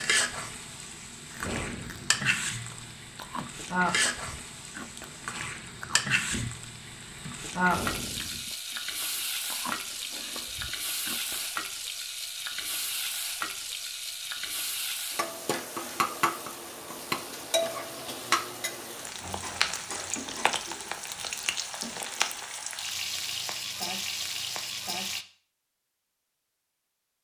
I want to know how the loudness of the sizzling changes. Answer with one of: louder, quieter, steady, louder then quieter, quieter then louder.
steady.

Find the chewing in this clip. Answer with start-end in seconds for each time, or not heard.
1.3-6.7, 7.6-11.5.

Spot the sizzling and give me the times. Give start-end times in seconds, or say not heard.
0.0-25.2.